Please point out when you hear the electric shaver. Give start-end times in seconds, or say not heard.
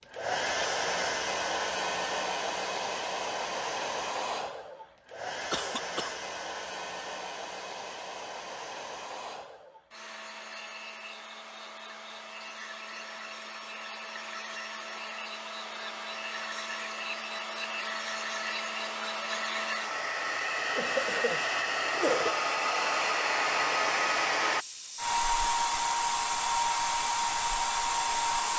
not heard.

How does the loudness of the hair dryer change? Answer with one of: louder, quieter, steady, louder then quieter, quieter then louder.
quieter then louder.